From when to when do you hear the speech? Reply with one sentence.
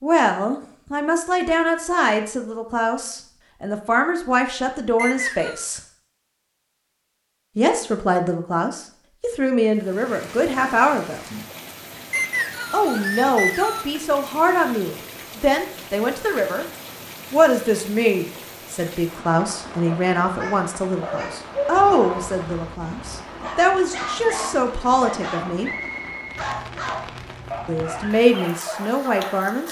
You can hear the speech from 0.0 to 5.8 s, from 7.5 to 11.2 s, from 12.7 to 16.6 s, from 17.3 to 25.7 s and from 27.6 to 29.6 s.